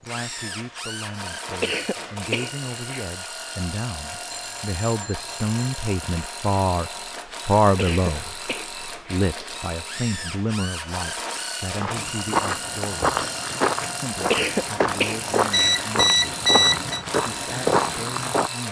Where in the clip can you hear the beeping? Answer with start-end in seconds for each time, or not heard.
4.3-5.8, 15.5-17.1.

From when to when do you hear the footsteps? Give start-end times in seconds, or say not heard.
11.8-18.5.